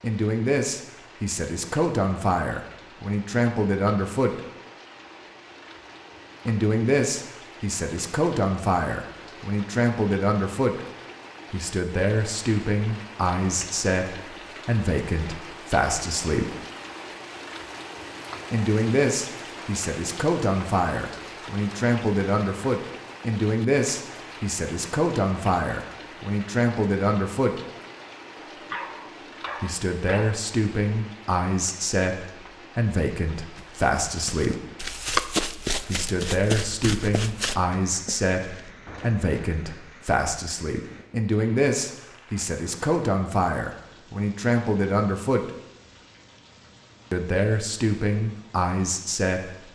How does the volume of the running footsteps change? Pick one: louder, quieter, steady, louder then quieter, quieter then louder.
louder then quieter.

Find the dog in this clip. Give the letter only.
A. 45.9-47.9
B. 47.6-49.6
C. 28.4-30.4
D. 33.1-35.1
C.